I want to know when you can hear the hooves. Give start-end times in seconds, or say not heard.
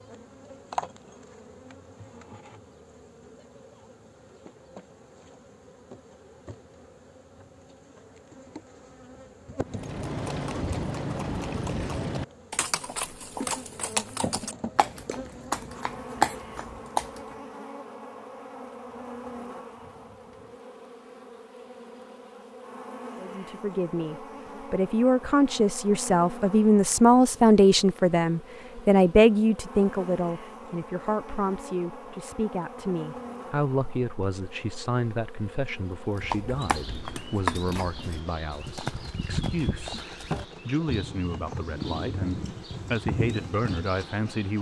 9.7-17.4, 36.1-44.0.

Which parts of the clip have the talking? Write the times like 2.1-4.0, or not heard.
23.2-40.0, 40.6-44.5.